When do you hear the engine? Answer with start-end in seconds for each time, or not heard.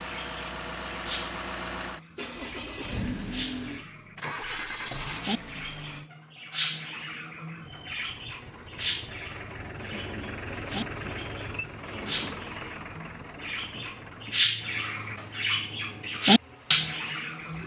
0.0-6.1, 7.6-17.6.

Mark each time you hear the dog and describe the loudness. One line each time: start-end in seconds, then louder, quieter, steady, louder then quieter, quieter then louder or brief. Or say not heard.
not heard.